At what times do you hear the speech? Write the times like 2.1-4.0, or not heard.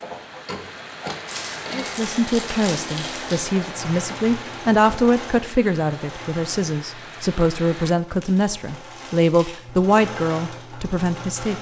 1.7-11.5.